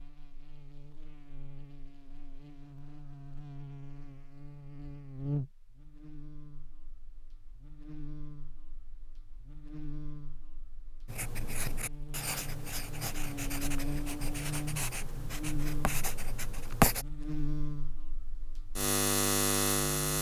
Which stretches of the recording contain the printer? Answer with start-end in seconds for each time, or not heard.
not heard.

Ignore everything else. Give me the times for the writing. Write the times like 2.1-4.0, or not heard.
11.1-17.1.